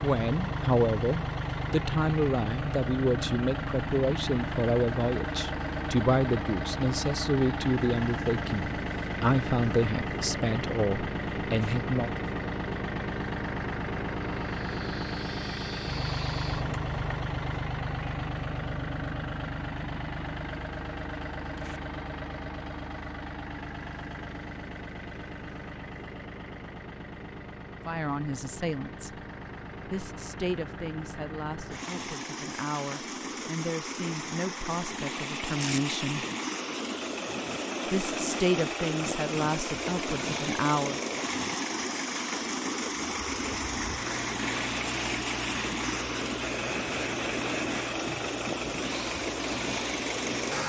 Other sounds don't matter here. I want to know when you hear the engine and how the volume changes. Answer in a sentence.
The engine can be heard from 0.0 to 50.6 s, getting quieter then louder.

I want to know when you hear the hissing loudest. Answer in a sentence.
The volume of the hissing peaks at 47 seconds.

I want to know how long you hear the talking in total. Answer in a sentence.
You can hear the talking for 23 seconds altogether.